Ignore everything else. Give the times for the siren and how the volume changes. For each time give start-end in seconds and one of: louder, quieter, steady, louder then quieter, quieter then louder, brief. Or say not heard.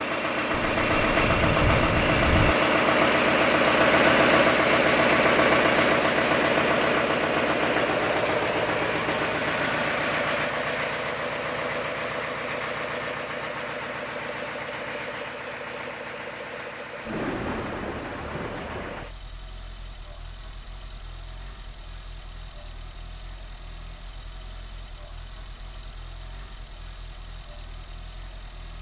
not heard.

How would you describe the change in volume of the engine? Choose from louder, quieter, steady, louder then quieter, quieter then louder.
quieter.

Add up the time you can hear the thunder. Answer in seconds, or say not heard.
4 s.